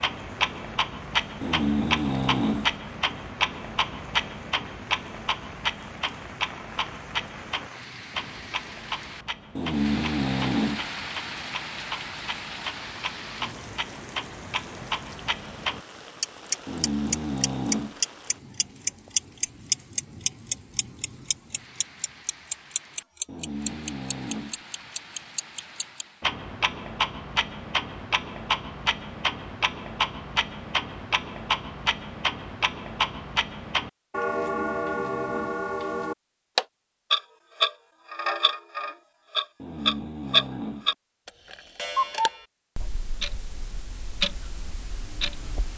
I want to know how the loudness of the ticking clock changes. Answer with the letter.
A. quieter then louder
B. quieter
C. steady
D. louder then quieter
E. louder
A.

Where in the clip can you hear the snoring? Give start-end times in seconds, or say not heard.
1.4-2.8, 9.6-10.9, 16.6-18.0, 23.2-24.6, 34.3-35.6, 39.5-41.0.